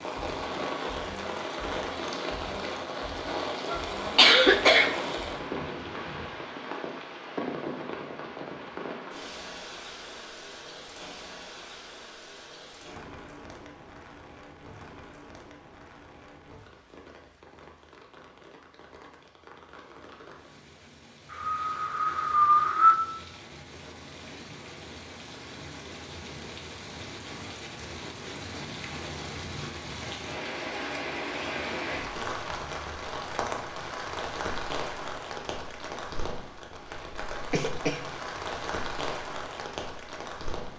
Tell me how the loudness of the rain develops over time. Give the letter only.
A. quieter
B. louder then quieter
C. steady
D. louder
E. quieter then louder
E.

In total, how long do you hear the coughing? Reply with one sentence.
You can hear the coughing for 4 seconds altogether.